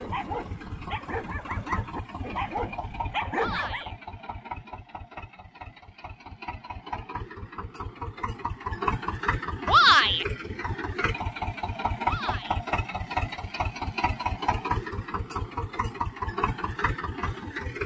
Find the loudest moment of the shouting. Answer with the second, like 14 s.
10 s.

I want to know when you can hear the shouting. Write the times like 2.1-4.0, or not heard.
3.4-4.0, 9.7-10.2, 12.0-12.6.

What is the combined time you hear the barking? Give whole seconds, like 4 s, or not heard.
4 s.